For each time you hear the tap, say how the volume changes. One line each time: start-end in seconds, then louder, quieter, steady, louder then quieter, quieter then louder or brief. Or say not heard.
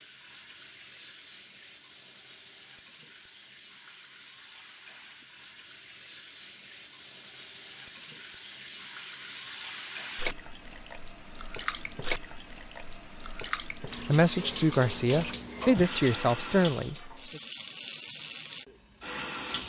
0.0-19.6 louder.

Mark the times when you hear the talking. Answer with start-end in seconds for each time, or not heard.
13.9-17.4.